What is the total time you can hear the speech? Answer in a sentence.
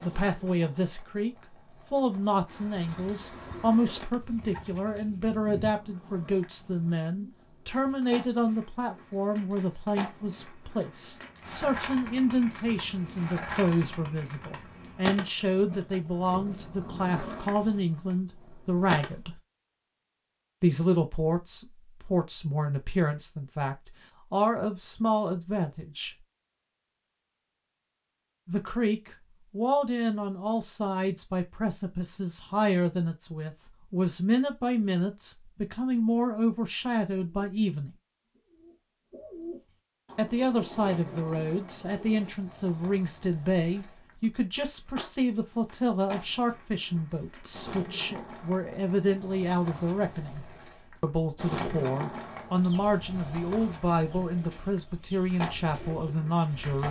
The speech can be heard for 51 seconds in total.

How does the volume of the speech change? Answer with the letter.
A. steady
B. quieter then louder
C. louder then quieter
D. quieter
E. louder
A.